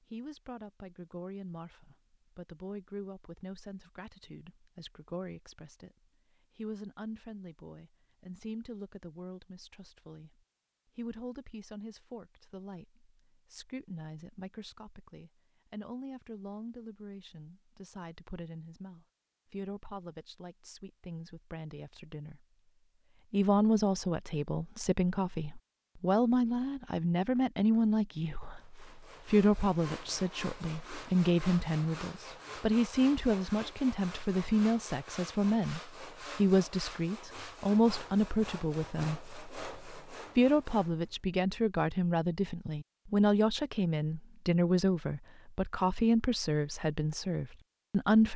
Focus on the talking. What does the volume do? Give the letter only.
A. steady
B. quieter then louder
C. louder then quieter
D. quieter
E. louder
E.